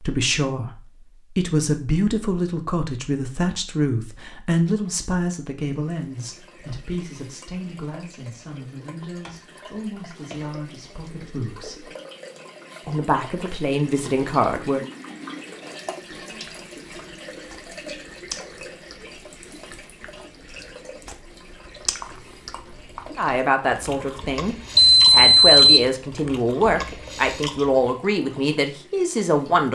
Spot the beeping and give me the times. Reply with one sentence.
The beeping can be heard from 24.8 to 25.9 s.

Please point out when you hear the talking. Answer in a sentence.
You can hear the talking from 0.0 to 11.9 s, from 12.8 to 14.8 s and from 23.1 to 29.7 s.